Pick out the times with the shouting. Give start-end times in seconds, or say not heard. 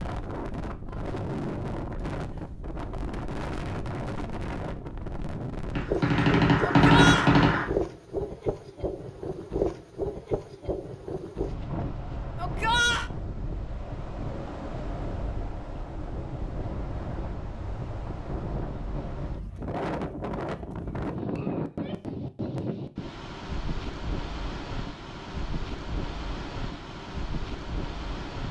6.7-7.3, 12.3-13.1, 21.6-22.1.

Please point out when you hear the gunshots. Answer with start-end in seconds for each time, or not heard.
5.8-7.7.